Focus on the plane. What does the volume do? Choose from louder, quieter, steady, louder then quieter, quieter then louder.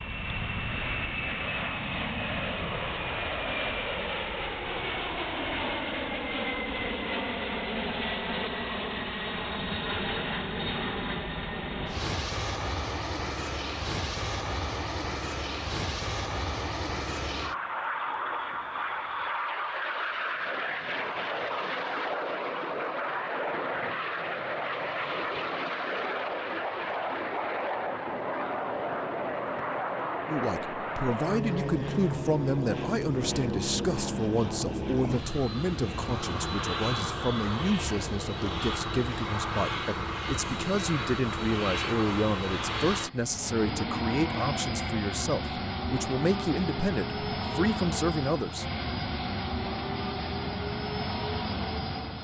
steady.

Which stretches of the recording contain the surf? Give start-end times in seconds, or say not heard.
not heard.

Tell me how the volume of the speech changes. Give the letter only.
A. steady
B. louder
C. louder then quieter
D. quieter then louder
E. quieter
A.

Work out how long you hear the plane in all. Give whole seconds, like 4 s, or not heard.
52 s.